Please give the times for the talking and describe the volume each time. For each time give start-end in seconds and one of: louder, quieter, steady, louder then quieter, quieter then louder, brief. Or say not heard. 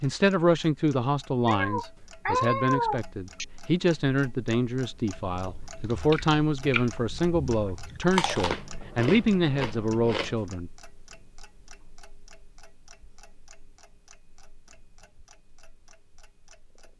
0.0-10.7 steady.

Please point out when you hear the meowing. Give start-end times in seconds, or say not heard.
1.4-3.5.